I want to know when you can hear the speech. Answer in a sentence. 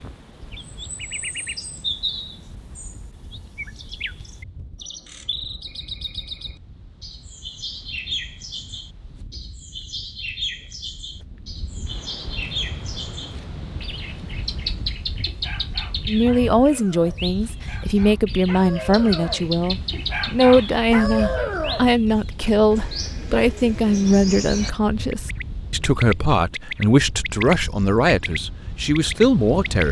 The speech can be heard from 16.1 to 29.8 s.